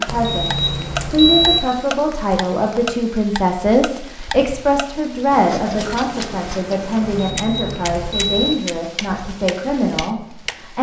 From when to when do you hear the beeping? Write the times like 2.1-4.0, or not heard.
0.1-1.6, 7.0-8.6.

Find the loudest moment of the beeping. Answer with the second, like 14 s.
1 s.